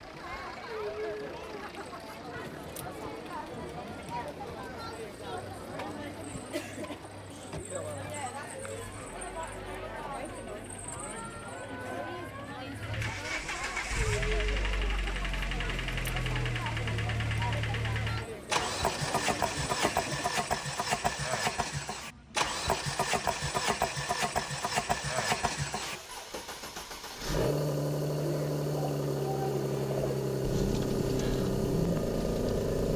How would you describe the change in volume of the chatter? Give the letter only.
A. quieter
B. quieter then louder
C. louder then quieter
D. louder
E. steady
E.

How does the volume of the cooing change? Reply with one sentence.
The volume of the cooing goes up.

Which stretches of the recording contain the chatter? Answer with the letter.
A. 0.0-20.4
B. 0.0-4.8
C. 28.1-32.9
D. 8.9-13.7
A.